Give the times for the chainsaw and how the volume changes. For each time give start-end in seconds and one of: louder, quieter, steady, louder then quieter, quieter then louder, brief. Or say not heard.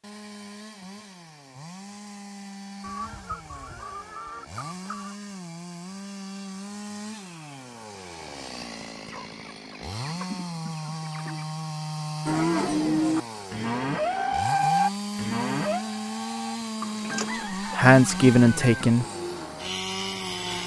0.0-20.6 louder.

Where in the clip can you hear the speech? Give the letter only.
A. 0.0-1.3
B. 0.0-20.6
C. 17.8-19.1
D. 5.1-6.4
C.